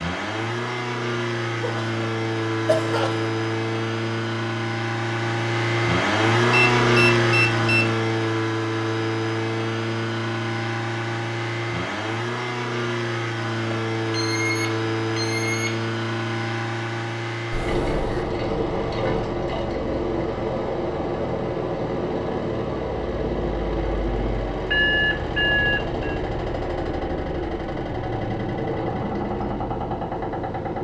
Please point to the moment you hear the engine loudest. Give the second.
7 s.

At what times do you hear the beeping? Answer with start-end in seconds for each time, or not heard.
6.5-8.0, 13.7-15.8, 24.6-26.1.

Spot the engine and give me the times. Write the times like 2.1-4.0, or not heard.
0.0-30.8.